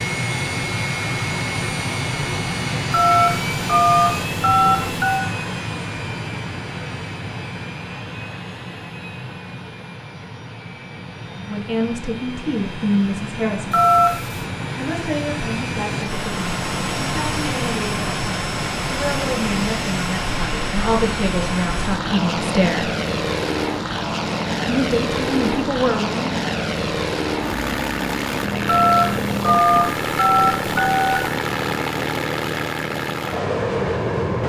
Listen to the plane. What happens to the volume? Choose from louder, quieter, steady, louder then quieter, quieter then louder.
quieter then louder.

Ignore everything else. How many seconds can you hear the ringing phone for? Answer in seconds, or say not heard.
6 s.